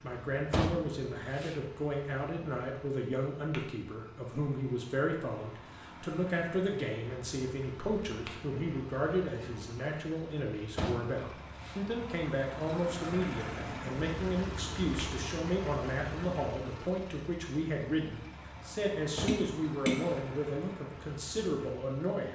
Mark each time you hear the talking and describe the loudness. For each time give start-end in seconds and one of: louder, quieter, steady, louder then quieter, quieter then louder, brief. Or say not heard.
0.0-22.3 steady.